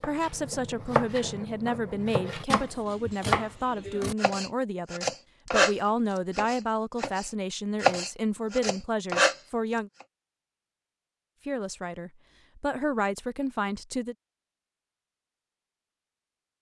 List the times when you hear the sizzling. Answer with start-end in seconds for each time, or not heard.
not heard.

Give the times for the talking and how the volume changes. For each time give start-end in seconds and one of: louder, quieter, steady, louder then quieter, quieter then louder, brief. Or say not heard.
0.0-9.9 steady
11.4-14.2 brief.